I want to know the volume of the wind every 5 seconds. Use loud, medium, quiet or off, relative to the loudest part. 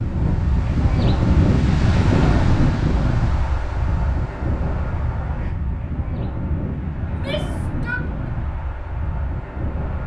loud, medium.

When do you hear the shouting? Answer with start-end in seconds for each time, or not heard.
7.0-8.1.